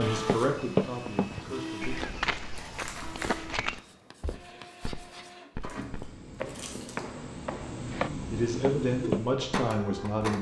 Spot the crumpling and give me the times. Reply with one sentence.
The crumpling can be heard from 2.5 to 3.5 s and from 5.6 to 7.0 s.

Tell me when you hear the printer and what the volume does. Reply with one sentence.
You can hear the printer from 0.0 to 10.3 s, getting quieter then louder.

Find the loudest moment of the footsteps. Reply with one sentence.
The loudest moment of the footsteps is at 1 second.